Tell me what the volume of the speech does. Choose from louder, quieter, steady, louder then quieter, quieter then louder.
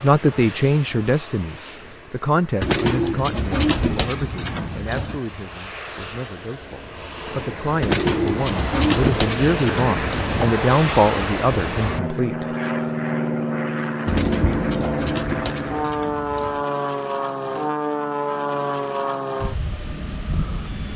quieter then louder.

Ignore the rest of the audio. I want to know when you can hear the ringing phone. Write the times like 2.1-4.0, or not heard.
14.1-14.9.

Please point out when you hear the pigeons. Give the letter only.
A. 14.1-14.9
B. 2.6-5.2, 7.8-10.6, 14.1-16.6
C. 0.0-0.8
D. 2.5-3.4
B.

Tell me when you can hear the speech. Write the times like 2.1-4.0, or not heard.
0.0-12.4.